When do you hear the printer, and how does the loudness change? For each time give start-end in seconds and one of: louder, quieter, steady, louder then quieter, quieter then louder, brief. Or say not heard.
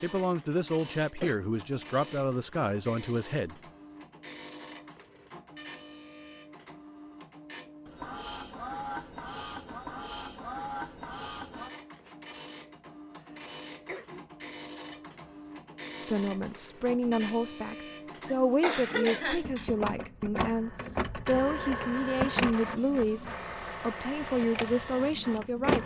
0.0-25.8 louder.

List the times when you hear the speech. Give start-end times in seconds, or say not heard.
0.0-3.5, 16.0-25.8.